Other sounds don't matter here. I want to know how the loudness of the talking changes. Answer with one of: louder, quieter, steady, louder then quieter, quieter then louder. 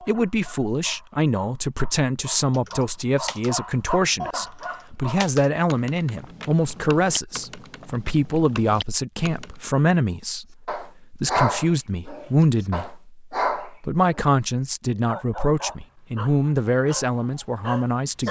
steady.